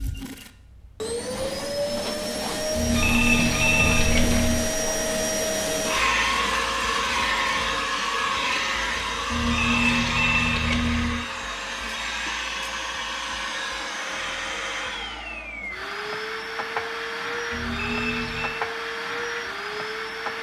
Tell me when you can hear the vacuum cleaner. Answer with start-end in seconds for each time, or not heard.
0.0-20.3.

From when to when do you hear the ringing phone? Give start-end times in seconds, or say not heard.
2.7-4.7, 9.3-11.2, 17.5-18.6.